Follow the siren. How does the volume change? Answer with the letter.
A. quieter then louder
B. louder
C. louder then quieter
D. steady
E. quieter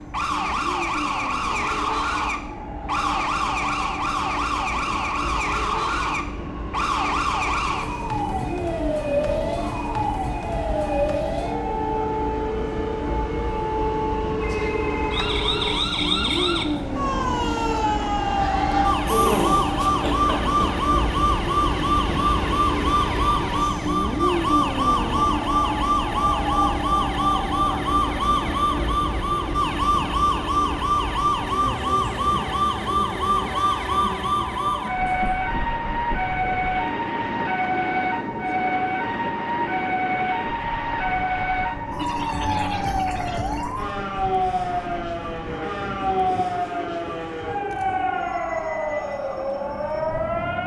D.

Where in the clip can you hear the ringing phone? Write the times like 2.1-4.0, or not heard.
14.4-15.6.